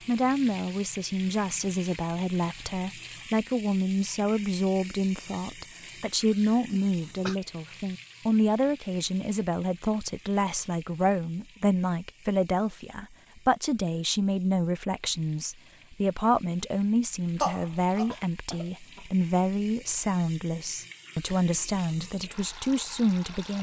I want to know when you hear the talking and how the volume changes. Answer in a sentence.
You can hear the talking from 0.1 to 23.5 s, at a steady volume.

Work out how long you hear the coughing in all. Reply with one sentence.
You can hear the coughing for 2 seconds altogether.